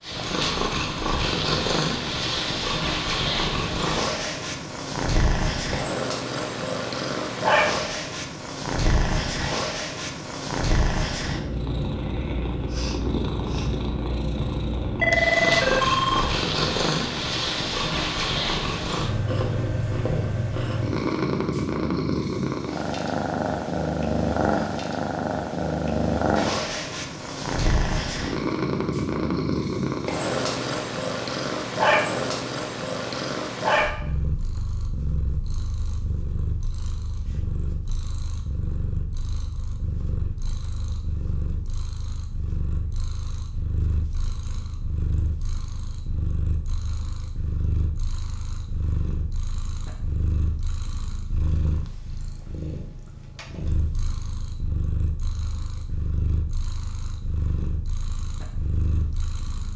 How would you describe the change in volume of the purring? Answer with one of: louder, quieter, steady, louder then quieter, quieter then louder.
quieter.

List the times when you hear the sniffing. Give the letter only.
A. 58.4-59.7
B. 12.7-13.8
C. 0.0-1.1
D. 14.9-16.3
B.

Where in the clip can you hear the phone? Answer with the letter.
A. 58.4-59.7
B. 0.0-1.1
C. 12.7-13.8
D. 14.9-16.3
D.